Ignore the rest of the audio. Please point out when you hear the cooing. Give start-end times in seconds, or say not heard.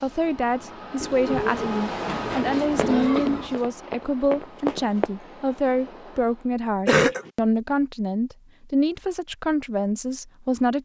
1.0-3.7.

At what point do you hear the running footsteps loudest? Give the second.
5 s.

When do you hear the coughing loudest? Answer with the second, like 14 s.
7 s.